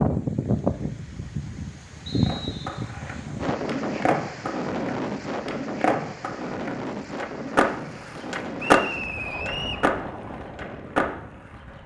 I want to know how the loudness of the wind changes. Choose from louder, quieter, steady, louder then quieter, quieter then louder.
quieter.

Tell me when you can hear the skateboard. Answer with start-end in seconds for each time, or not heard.
2.2-11.8.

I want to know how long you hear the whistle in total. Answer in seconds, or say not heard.
2 s.